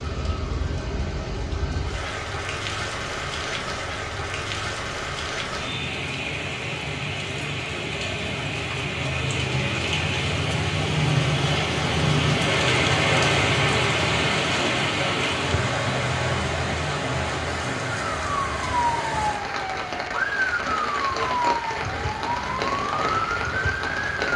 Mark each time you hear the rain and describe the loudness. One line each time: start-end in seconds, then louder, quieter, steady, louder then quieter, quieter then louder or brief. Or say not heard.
0.0-24.3 louder then quieter.